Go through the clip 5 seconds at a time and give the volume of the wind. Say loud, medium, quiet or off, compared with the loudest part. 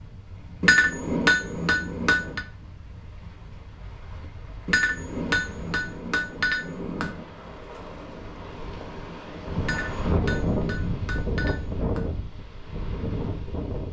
quiet, medium, loud.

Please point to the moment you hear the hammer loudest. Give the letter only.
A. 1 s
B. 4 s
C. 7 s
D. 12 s
A.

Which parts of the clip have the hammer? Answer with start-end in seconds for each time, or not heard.
0.6-2.5, 4.7-7.2, 9.6-12.1.